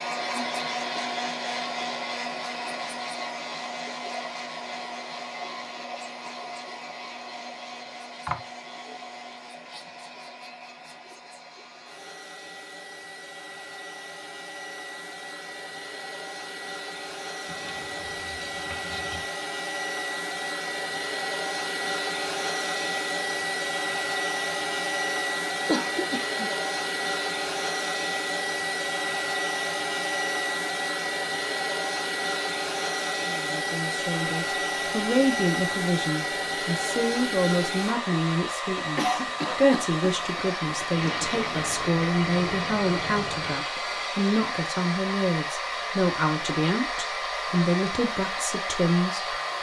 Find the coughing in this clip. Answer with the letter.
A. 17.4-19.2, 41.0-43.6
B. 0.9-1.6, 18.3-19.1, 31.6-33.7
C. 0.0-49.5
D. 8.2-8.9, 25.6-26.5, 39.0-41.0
D.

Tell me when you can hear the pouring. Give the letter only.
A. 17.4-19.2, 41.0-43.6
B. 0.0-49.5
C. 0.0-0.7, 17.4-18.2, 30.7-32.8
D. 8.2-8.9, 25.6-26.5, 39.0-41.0
A.